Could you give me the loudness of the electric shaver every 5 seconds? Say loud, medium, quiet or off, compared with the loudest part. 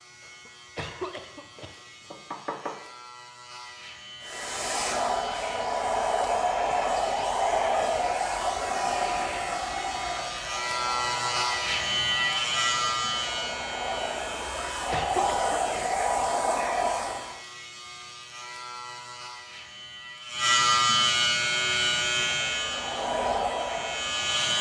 quiet, quiet, loud, quiet, loud.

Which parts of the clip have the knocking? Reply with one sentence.
The knocking can be heard from 1.6 to 2.8 s.